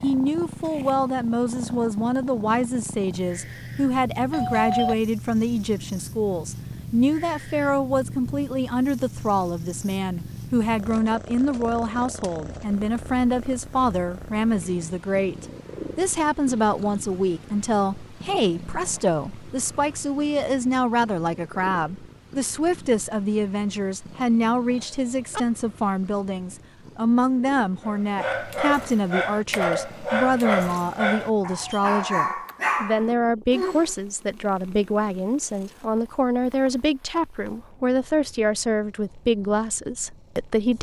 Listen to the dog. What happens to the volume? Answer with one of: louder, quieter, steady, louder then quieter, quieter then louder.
steady.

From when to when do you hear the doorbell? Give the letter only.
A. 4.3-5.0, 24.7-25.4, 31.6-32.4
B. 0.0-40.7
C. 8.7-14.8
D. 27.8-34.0
A.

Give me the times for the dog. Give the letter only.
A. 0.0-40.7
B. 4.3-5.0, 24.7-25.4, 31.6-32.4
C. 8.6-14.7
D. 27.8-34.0
D.